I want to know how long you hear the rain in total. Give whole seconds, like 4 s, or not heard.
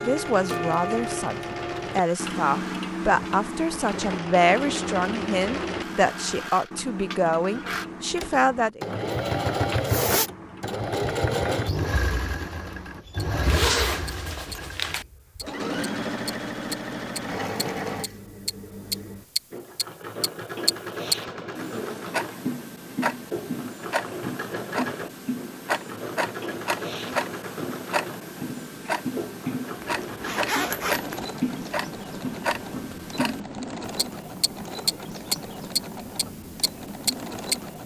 not heard.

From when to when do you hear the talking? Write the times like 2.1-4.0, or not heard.
0.0-8.8.